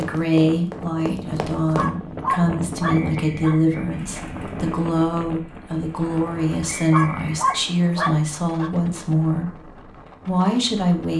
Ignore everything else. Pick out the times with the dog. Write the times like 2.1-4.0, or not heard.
1.8-3.6, 6.9-8.8.